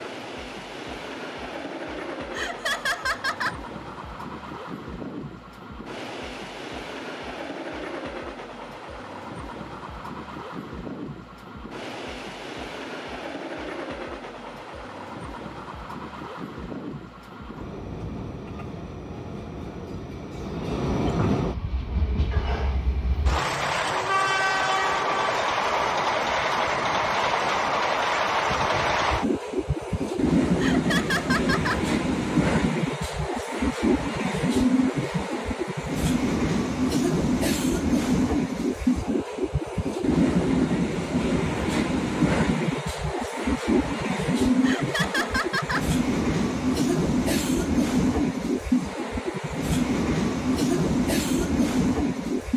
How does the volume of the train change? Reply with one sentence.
The loudness of the train goes up.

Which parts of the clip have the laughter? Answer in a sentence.
You can hear the laughter from 2.4 to 3.5 s, from 30.6 to 31.8 s and from 44.6 to 45.9 s.